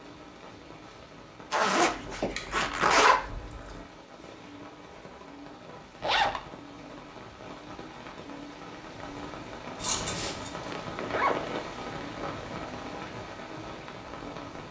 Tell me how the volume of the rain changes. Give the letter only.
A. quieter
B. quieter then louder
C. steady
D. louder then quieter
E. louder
E.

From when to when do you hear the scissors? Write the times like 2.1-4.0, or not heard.
1.9-3.9, 9.8-10.5.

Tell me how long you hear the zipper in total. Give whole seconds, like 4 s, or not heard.
4 s.